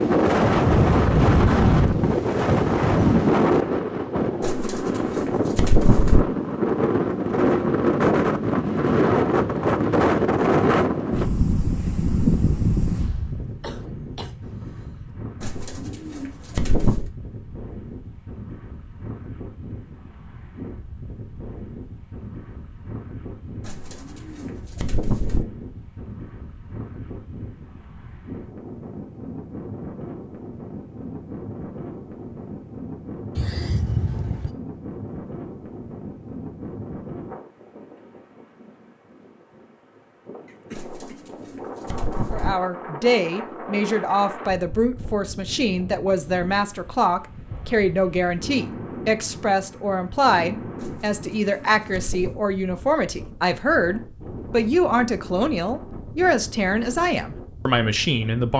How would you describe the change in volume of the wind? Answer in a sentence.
The loudness of the wind goes down.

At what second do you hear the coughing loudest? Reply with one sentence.
The volume of the coughing peaks at 34 seconds.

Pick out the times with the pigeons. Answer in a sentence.
You can hear the pigeons from 4.4 to 6.2 s, from 15.4 to 17.1 s, from 23.6 to 25.4 s, from 40.7 to 42.5 s and from 50.8 to 52.4 s.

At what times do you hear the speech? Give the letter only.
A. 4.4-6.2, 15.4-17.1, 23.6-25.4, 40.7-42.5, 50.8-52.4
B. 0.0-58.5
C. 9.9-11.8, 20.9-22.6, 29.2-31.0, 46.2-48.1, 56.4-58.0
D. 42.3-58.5
D.